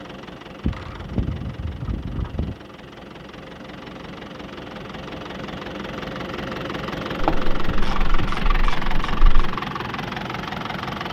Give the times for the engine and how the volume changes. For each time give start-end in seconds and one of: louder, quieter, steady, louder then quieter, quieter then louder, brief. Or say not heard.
0.0-11.0 louder.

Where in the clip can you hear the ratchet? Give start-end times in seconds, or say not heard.
0.6-2.5, 7.2-9.6.